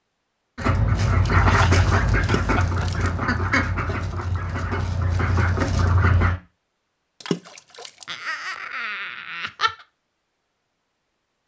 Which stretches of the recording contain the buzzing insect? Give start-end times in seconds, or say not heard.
not heard.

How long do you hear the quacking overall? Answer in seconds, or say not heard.
6 s.